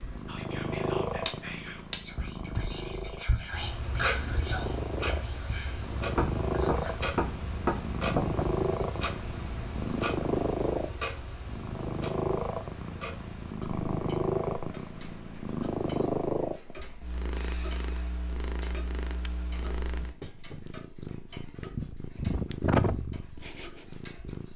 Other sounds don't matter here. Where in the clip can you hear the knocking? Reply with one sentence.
The knocking can be heard from 5.7 to 8.4 s.